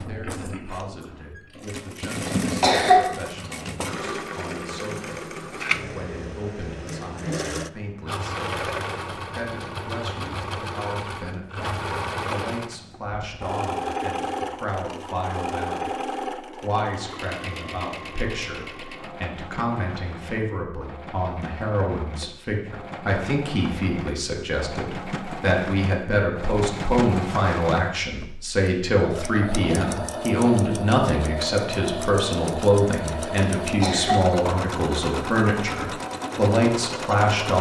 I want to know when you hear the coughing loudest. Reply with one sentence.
The loudest moment of the coughing is at 3 seconds.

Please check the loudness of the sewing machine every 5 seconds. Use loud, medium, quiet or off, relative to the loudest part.
loud, loud, loud, loud, medium, loud, loud, loud.